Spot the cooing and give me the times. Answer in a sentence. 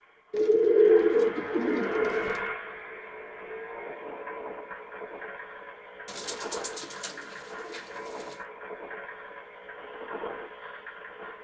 You can hear the cooing from 0.3 to 2.5 s and from 6.0 to 8.3 s.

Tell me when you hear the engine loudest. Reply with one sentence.
The volume of the engine peaks at 2 seconds.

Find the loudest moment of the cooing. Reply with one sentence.
The loudest moment of the cooing is at 1 second.